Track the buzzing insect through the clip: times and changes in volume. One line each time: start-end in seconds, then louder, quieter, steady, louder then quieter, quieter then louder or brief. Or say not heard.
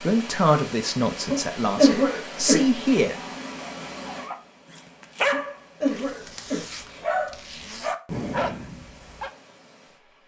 not heard.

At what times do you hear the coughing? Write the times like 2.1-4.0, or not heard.
1.3-3.1, 5.3-7.0.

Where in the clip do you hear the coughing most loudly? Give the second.
2 s.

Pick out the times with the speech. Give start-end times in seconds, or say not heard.
0.0-3.1.